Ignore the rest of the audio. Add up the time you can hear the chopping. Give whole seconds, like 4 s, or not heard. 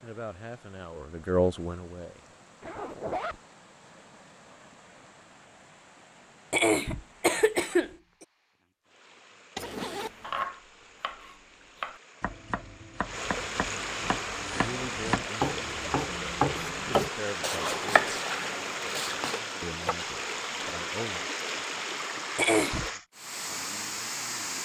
10 s.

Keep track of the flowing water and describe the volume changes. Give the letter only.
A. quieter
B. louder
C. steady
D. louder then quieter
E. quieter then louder
B.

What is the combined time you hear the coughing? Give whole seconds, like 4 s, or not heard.
2 s.